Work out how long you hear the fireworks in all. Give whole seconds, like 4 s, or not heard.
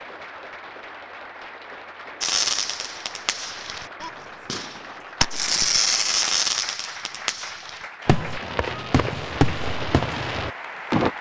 9 s.